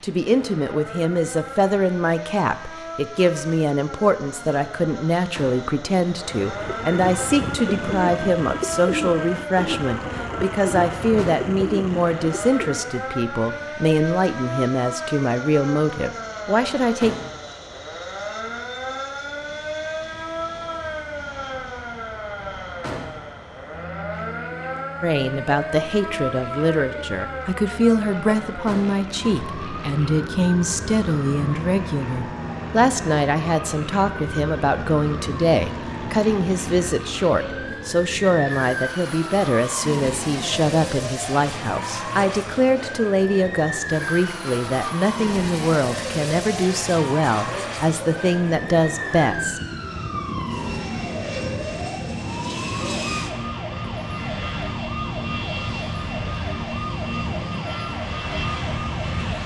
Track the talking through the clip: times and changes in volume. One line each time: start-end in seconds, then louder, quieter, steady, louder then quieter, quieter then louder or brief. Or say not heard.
0.0-17.1 steady
25.0-49.6 steady.